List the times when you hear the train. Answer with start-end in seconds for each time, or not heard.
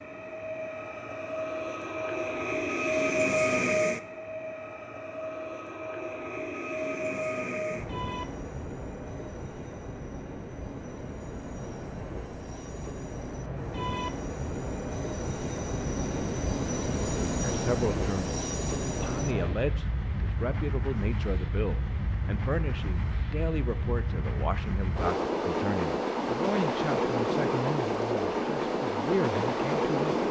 0.0-30.2.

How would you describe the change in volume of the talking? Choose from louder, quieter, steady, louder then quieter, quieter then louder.
steady.